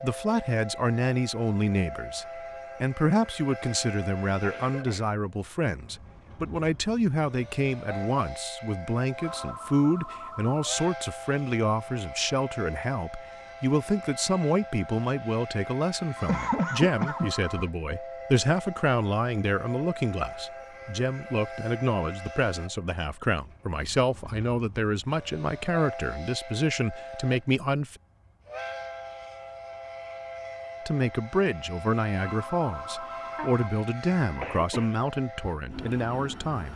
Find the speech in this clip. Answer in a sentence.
You can hear the speech from 0.0 to 27.9 s and from 30.9 to 36.7 s.